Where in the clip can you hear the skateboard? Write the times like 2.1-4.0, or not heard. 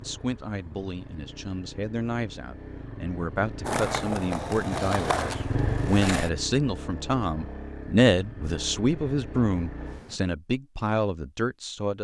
3.6-6.3.